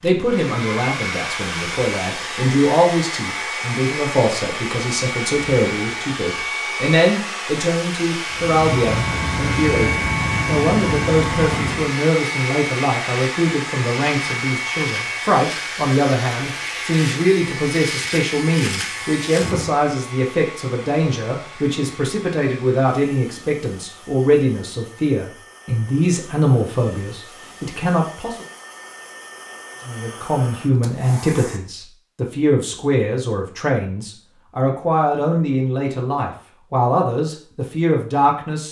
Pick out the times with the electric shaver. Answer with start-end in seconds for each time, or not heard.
8.3-19.7.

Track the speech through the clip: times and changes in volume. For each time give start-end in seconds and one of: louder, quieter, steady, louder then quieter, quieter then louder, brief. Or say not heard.
0.0-28.4 steady
29.9-38.6 steady.